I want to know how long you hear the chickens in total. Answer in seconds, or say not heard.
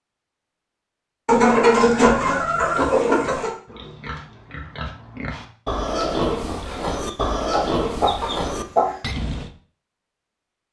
4 s.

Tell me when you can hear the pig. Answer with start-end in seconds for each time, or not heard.
2.5-9.5.